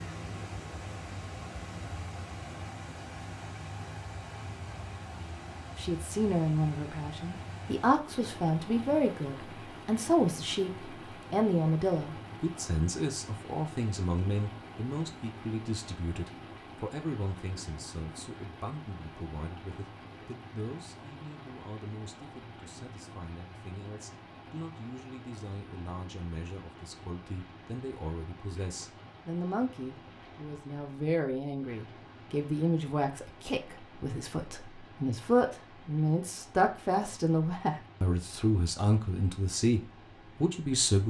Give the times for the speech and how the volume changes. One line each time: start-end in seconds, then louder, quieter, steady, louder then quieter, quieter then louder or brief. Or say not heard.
5.8-41.0 quieter then louder.